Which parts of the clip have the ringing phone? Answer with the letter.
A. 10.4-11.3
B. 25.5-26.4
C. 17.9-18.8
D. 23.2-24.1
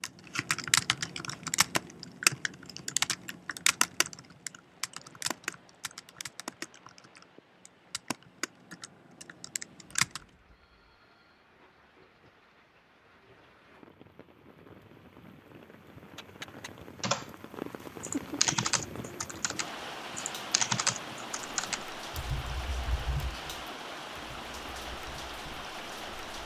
A.